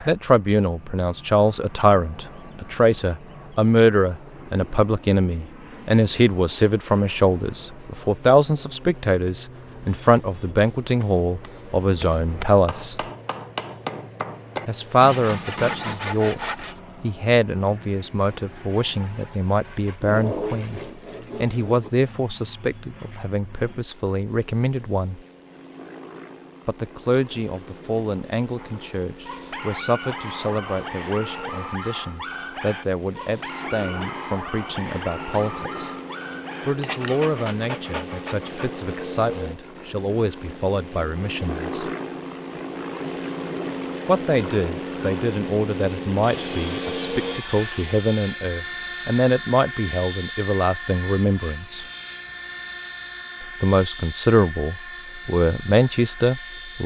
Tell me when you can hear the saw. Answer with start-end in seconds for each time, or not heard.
15.1-16.8, 20.0-21.9, 46.2-48.1.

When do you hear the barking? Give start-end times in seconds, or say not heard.
28.6-38.9.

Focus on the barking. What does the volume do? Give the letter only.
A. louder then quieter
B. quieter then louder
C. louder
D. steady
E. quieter
D.